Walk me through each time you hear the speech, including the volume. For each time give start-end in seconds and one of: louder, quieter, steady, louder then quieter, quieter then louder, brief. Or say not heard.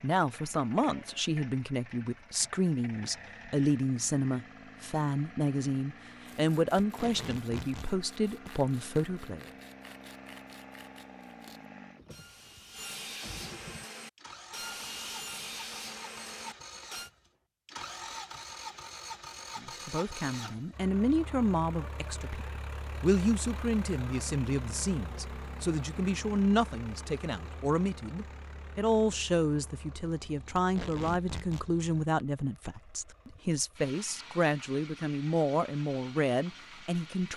0.0-9.4 steady
19.6-37.3 steady.